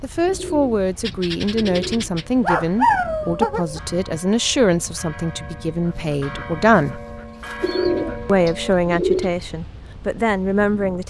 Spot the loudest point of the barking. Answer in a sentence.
The loudest moment of the barking is at 3 seconds.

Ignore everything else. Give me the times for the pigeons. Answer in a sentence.
You can hear the pigeons from 0.2 to 2.3 s and from 7.6 to 9.3 s.